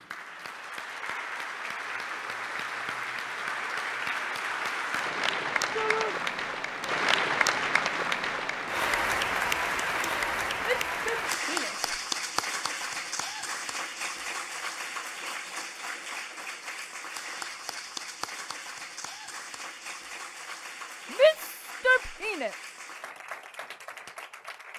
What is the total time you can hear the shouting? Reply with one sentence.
You can hear the shouting for 3 seconds altogether.